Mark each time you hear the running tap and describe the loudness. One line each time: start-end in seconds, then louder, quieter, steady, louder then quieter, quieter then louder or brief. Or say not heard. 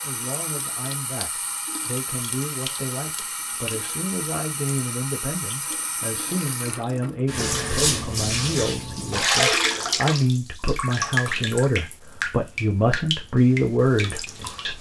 0.0-14.7 louder then quieter.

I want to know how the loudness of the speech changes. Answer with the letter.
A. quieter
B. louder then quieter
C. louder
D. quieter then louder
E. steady
C.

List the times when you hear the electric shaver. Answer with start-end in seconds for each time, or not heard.
not heard.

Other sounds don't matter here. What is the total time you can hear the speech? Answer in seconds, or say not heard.
15 s.